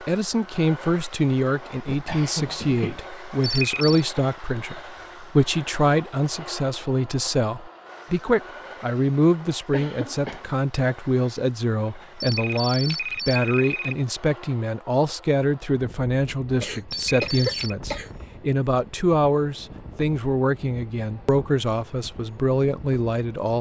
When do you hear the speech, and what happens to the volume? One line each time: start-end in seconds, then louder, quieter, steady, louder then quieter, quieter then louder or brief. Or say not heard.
0.0-23.5 steady.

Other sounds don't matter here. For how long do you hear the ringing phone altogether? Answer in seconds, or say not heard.
3 s.